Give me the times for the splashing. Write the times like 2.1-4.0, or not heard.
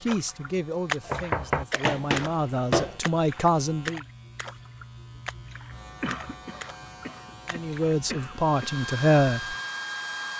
0.1-8.0.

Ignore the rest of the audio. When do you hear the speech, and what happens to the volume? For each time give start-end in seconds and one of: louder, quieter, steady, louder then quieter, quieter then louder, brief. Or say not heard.
0.0-4.0 quieter then louder
7.5-9.6 brief.